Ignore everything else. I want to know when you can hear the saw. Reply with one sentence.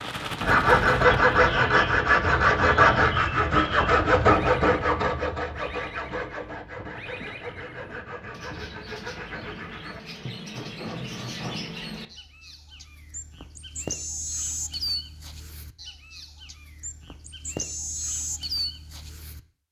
The saw can be heard from 0.4 to 11.7 s.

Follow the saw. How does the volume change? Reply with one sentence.
The volume of the saw goes down.